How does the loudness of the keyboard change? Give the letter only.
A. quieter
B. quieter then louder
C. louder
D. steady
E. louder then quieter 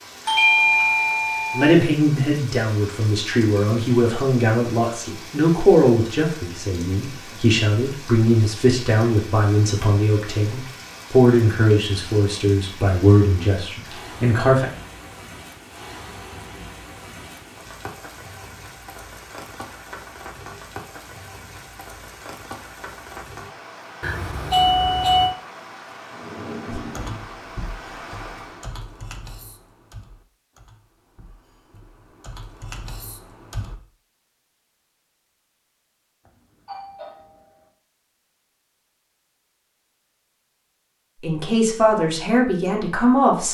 B.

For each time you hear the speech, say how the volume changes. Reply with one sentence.
You can hear the speech from 1.5 to 14.7 s, at a steady volume; and briefly from 41.2 to 43.4 s.